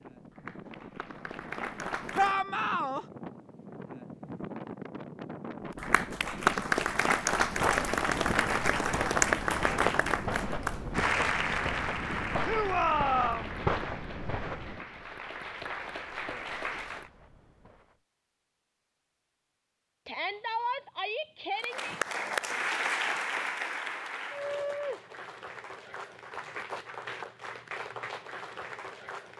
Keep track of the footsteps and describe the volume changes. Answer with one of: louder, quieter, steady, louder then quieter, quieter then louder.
quieter.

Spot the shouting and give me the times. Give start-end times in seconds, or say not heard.
2.1-3.0, 12.4-13.5, 20.1-21.9.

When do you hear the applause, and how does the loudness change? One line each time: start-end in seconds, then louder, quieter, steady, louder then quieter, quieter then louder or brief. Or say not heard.
0.1-2.4 brief
5.7-17.1 quieter
21.6-29.3 quieter.